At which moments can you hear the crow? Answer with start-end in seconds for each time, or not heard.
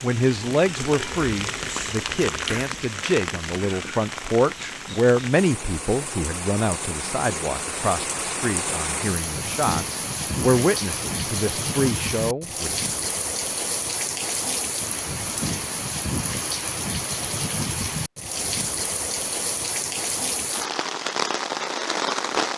not heard.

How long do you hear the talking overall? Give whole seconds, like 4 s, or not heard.
13 s.